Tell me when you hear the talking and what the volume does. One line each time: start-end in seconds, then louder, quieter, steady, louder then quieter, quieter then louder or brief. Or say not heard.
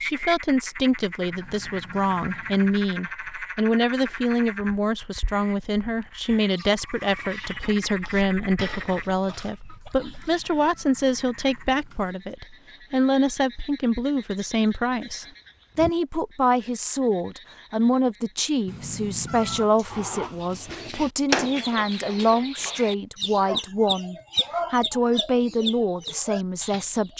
0.0-27.1 steady.